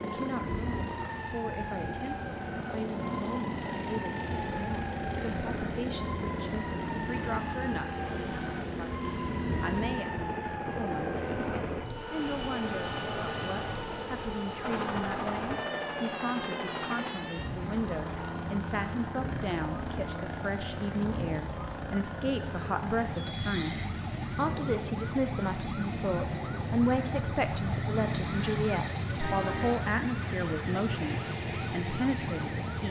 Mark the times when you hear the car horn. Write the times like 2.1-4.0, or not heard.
29.2-29.9.